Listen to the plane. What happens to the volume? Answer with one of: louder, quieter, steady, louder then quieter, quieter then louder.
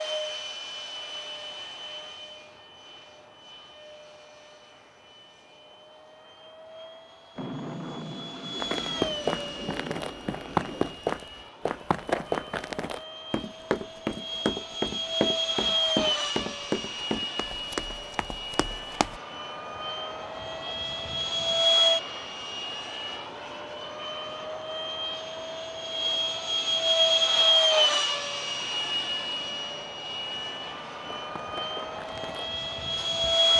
louder.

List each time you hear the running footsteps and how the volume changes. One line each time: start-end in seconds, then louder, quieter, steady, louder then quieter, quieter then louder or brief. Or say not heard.
8.6-19.2 quieter
31.1-33.5 brief.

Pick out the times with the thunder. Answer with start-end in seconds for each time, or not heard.
7.3-11.0.